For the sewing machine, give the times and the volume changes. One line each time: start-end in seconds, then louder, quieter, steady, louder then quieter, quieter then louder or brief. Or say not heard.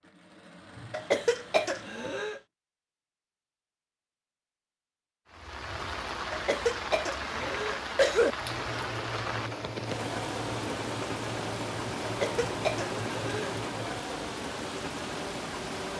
0.0-2.4 brief
7.3-14.1 steady.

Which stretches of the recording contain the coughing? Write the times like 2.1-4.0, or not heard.
0.9-2.4, 6.3-8.3, 12.0-13.6.